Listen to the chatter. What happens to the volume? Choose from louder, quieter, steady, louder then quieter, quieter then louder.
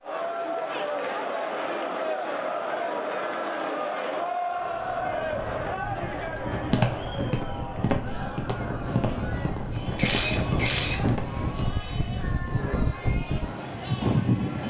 quieter.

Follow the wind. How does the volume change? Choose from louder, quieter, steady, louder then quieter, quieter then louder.
louder.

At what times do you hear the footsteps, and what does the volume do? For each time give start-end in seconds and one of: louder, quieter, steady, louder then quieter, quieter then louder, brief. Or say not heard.
6.3-11.4 quieter.